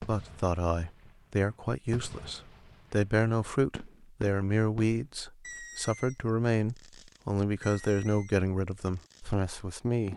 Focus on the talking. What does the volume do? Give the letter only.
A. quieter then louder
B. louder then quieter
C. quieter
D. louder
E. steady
E.